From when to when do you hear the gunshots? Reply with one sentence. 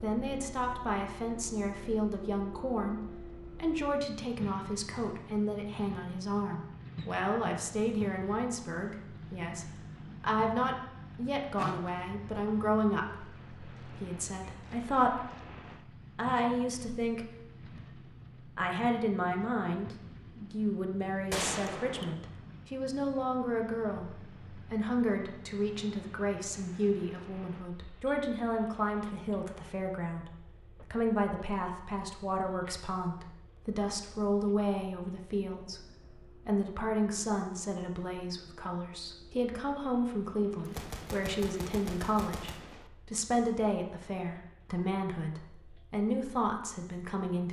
You can hear the gunshots from 11.6 to 12.1 s, from 21.3 to 22.1 s and from 40.6 to 42.9 s.